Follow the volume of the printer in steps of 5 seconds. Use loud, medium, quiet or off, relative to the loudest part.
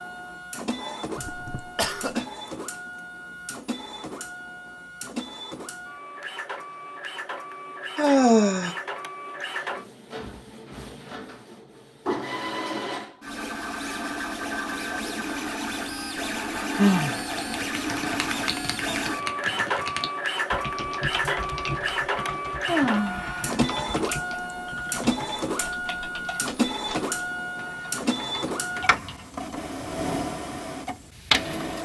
medium, medium, medium, loud, loud, loud, loud.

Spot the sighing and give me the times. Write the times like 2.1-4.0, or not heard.
8.0-8.8, 16.8-17.2, 22.6-23.8.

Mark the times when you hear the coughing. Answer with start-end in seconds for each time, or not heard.
1.1-2.2.